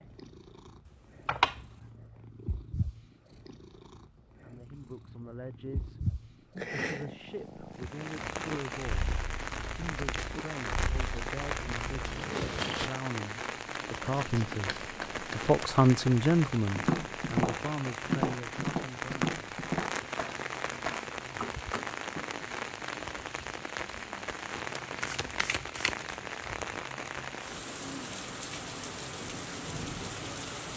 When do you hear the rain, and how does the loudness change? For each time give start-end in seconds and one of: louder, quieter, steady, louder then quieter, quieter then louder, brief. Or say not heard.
7.7-30.7 steady.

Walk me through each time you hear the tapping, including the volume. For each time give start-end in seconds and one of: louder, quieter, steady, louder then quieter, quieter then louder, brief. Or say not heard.
16.8-22.4 quieter.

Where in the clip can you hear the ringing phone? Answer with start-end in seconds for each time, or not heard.
not heard.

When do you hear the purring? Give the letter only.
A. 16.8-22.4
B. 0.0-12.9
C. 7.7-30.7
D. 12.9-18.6
B.